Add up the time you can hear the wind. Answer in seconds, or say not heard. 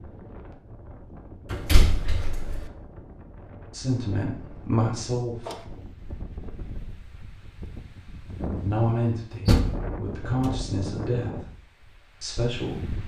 13 s.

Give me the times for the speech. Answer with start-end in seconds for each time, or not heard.
3.7-5.5, 8.5-11.4, 12.2-13.0.